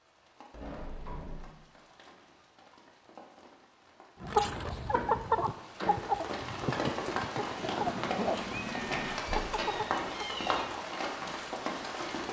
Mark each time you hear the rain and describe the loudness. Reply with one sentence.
You can hear the rain from 0.0 to 12.2 s, getting louder.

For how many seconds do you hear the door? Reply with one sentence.
The door can be heard for 4 seconds in total.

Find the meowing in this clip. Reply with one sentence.
You can hear the meowing from 7.5 to 9.2 s.